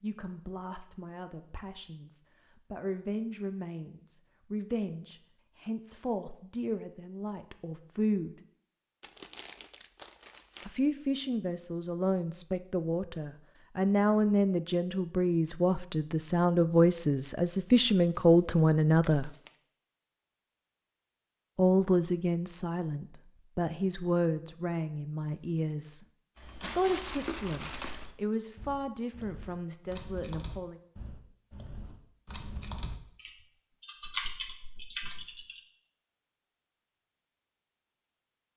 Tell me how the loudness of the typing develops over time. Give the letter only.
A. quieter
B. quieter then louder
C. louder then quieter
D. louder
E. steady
D.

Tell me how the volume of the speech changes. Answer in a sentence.
The volume of the speech goes up, then down.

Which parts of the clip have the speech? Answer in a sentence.
You can hear the speech from 0.0 to 8.3 s, from 10.7 to 19.3 s and from 21.6 to 30.8 s.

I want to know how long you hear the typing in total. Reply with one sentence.
The typing can be heard for 9 seconds in total.